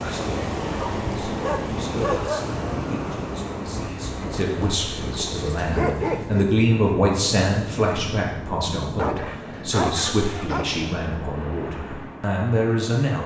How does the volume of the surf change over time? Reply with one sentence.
The loudness of the surf goes down.